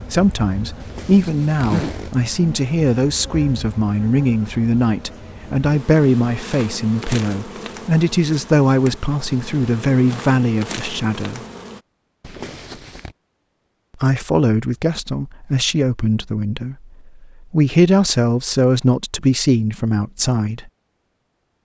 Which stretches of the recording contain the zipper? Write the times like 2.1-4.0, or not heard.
0.8-2.1, 12.2-13.2.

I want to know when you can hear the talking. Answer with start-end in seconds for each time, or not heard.
0.1-11.4, 14.0-20.7.